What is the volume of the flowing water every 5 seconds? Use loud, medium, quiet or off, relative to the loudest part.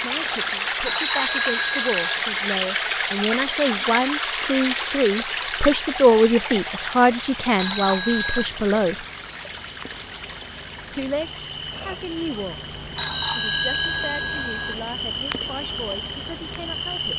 loud, medium, quiet, quiet.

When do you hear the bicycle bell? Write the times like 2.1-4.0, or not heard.
0.8-2.1, 7.5-8.5, 12.9-14.8.